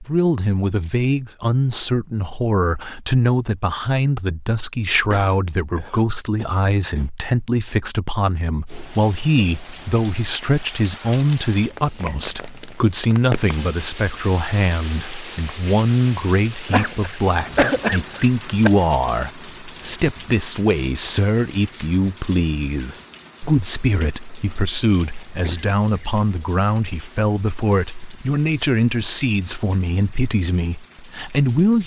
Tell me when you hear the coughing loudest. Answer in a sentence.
The volume of the coughing peaks at 18 seconds.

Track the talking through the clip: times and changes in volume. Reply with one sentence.
You can hear the talking from 0.0 to 31.8 s, at a steady volume.